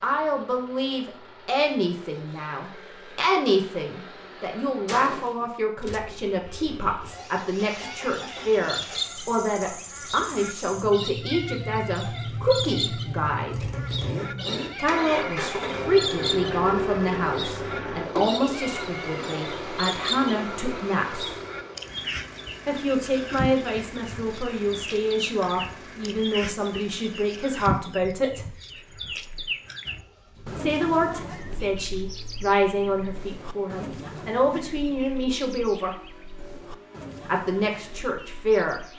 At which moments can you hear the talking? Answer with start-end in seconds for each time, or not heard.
0.0-13.7, 14.8-21.4, 22.6-28.6, 30.6-36.1, 37.2-38.8.